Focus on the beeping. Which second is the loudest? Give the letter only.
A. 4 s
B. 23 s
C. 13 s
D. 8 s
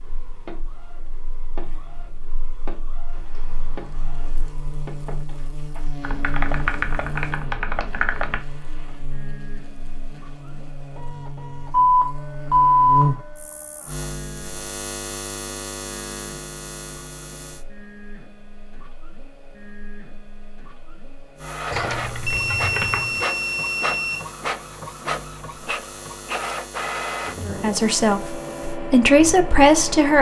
C.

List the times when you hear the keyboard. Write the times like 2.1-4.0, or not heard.
6.0-8.4, 21.7-23.2.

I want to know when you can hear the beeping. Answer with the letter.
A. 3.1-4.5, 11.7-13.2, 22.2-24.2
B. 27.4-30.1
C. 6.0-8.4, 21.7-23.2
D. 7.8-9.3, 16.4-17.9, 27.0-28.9
A.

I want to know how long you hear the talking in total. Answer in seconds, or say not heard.
3 s.